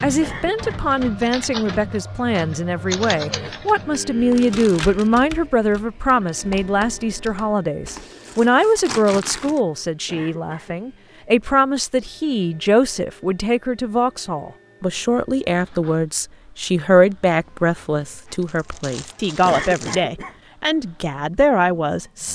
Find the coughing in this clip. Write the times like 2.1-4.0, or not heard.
0.2-0.8, 10.1-10.8, 19.4-20.4.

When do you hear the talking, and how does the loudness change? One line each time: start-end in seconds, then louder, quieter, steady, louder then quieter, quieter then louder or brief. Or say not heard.
0.0-22.3 steady.